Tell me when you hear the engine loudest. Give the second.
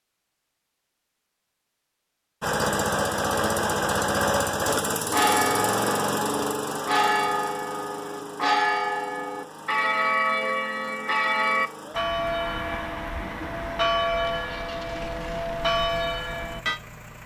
4 s.